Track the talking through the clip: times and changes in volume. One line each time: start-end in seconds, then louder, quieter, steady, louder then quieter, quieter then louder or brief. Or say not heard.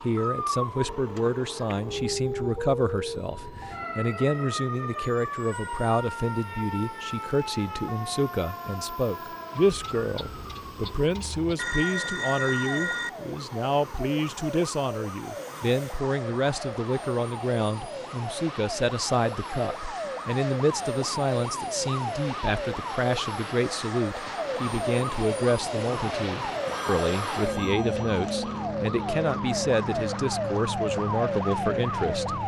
0.0-32.4 steady.